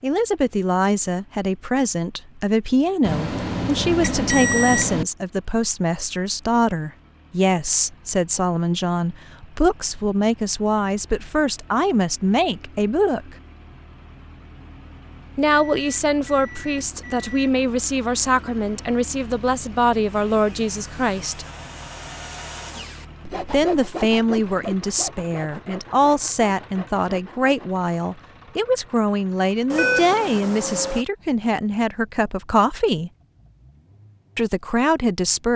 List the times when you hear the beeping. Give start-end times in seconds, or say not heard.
3.0-5.0, 15.7-17.5, 29.7-31.1.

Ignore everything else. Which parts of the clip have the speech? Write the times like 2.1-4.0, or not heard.
0.0-13.3, 15.3-21.4, 23.5-33.1, 34.4-35.5.